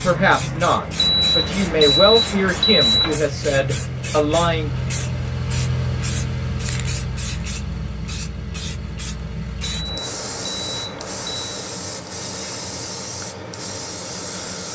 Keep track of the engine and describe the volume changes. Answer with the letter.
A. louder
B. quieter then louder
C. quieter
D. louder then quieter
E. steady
D.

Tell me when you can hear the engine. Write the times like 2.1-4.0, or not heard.
0.0-9.8.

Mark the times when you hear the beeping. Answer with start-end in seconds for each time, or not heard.
0.9-3.2, 9.6-11.5.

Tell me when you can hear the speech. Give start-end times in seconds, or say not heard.
0.0-4.9.